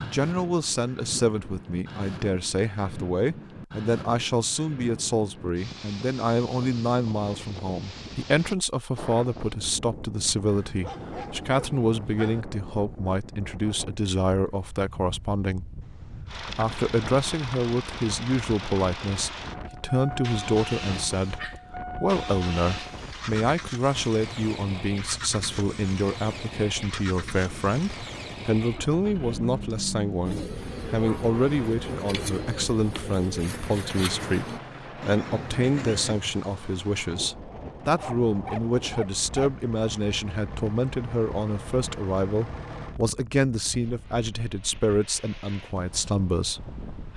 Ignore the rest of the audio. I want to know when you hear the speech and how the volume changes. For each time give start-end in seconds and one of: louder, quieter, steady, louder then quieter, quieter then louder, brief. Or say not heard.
0.0-47.1 steady.